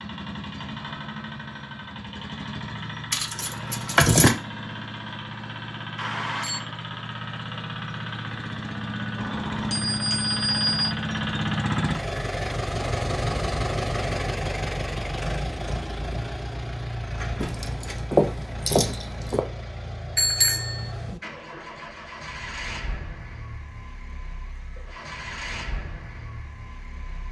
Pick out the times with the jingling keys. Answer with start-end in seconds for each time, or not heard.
3.1-4.3, 17.4-19.4.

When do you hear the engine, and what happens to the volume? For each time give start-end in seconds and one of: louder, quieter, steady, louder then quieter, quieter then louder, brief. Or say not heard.
0.0-27.2 louder then quieter.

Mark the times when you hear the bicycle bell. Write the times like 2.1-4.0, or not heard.
6.0-6.6, 9.2-10.9, 20.1-21.2.